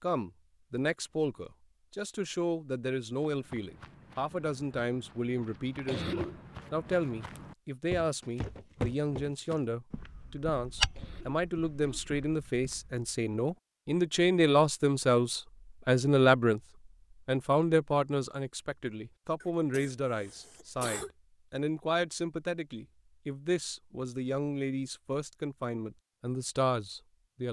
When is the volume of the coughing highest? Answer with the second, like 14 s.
6 s.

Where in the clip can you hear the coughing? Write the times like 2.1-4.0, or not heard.
5.8-6.4, 10.9-12.0, 19.4-21.1.